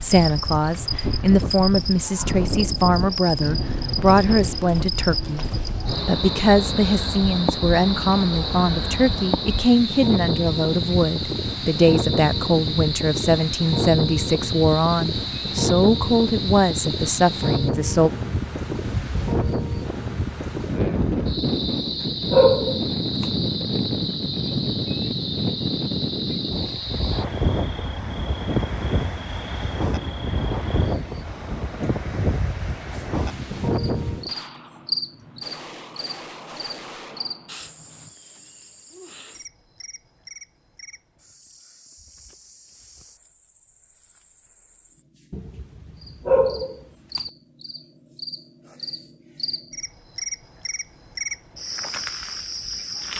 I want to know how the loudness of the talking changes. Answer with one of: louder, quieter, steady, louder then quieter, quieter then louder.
steady.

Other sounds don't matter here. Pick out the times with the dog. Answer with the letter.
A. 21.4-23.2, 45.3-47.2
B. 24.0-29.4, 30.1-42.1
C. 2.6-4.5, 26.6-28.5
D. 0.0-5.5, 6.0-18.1
A.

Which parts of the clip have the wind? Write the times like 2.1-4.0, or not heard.
0.0-34.4.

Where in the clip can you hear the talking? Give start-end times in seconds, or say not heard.
0.0-5.5, 6.0-18.1.